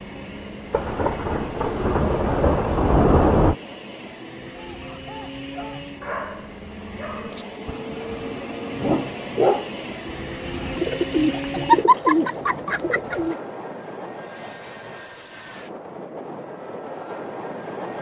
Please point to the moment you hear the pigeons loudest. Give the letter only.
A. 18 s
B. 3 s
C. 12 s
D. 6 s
C.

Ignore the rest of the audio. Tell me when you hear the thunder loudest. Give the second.
3 s.